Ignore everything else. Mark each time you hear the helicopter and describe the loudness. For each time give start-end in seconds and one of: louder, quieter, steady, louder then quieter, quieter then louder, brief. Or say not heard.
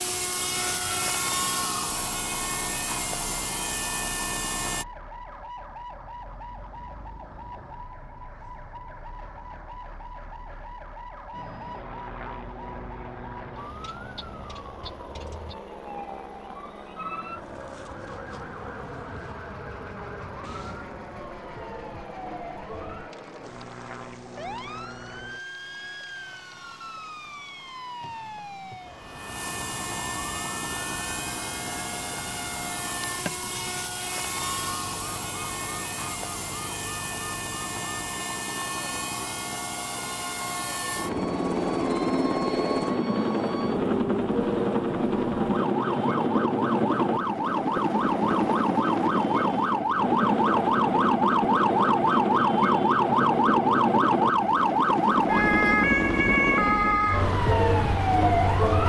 0.0-4.8 steady
11.3-58.8 louder.